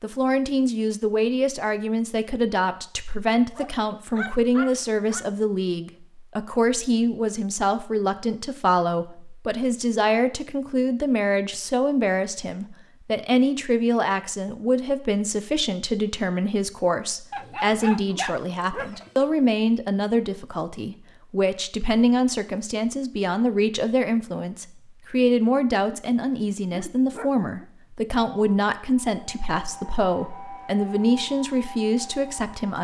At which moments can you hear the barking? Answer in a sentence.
The barking can be heard from 3.5 to 5.2 s, from 17.3 to 19.2 s and from 25.9 to 27.6 s.